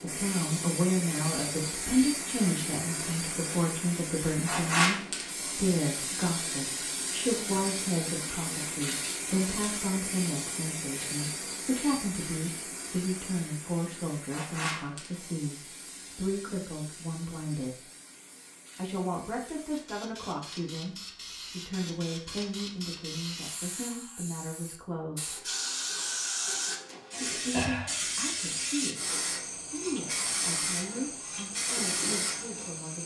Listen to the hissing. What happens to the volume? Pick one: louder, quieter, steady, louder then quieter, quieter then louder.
quieter then louder.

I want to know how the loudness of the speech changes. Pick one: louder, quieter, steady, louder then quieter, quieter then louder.
quieter.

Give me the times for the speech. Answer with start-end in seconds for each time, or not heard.
0.0-17.9, 18.8-25.5, 27.2-33.0.